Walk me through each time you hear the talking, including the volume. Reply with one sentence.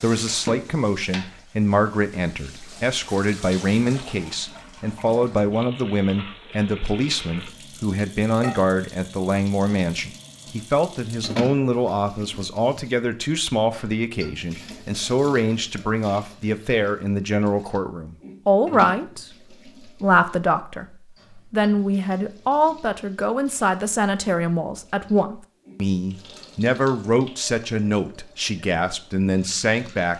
The talking can be heard from 0.0 to 30.1 s, at a steady volume.